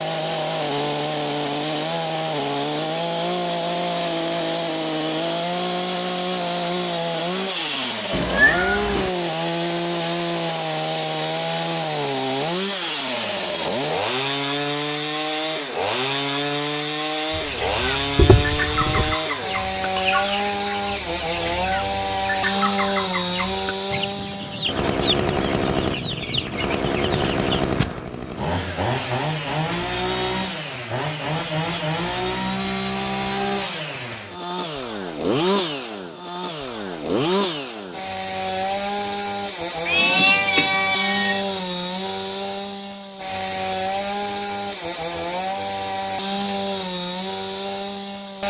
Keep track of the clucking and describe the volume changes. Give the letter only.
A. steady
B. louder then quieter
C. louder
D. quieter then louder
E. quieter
A.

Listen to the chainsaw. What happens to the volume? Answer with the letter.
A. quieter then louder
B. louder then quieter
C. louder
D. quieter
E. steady
E.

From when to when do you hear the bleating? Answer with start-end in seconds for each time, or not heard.
not heard.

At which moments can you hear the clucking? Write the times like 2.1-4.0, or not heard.
17.4-28.1.